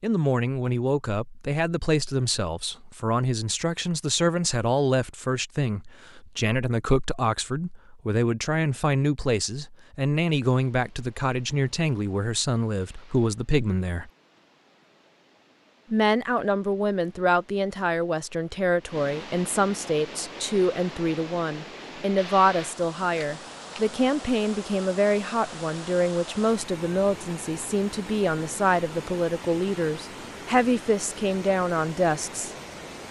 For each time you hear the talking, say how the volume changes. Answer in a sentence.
The talking can be heard from 0.0 to 14.1 s, at a steady volume; and from 15.9 to 32.5 s, at a steady volume.